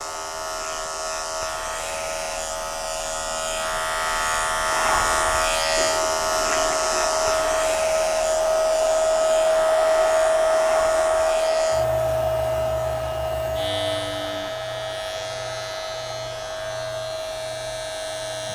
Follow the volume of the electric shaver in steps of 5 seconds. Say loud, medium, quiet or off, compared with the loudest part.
loud, loud, medium, medium.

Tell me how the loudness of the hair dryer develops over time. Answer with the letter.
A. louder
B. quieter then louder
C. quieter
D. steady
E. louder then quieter
E.